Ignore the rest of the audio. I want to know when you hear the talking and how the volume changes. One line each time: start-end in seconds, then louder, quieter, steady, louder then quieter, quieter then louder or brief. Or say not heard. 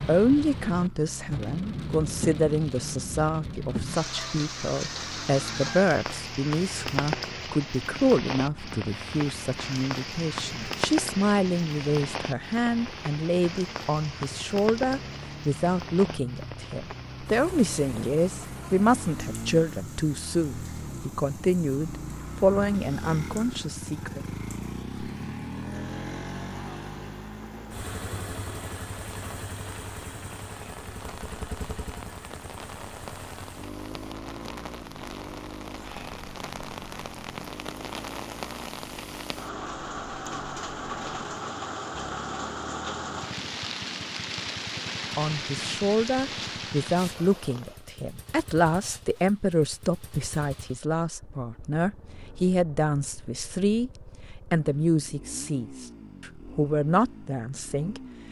0.0-24.2 steady
45.1-58.0 steady.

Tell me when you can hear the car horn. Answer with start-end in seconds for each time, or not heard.
not heard.